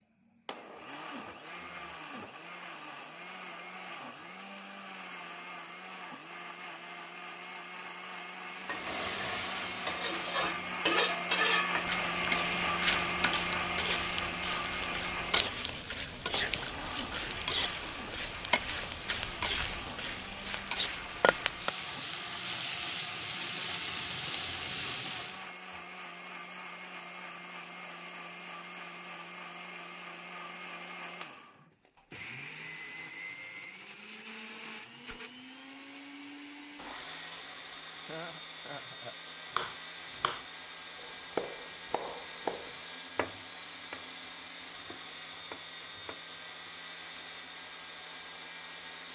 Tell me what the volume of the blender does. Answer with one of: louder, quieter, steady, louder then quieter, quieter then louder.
louder then quieter.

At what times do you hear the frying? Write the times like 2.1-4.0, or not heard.
8.5-25.5.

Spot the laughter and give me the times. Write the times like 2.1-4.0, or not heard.
38.0-39.1.